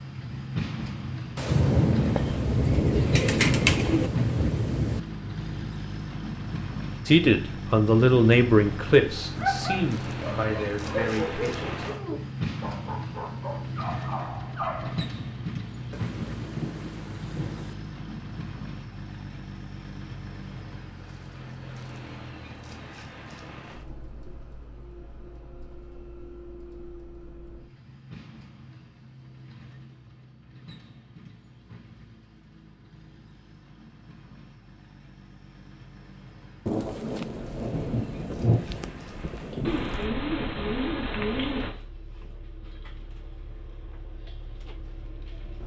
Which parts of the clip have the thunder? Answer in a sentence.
You can hear the thunder from 1.4 to 5.0 s, from 15.9 to 17.8 s and from 36.6 to 40.0 s.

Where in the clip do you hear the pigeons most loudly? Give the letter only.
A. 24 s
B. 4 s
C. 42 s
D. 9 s
B.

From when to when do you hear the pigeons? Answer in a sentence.
You can hear the pigeons from 2.1 to 4.1 s and from 39.6 to 41.8 s.